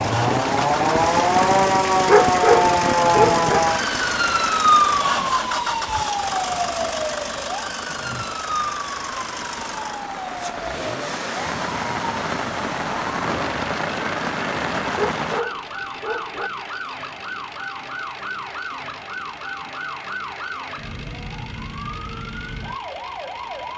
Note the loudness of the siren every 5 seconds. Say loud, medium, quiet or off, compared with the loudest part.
loud, medium, quiet, quiet, quiet.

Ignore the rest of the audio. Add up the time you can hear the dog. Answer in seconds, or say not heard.
3 s.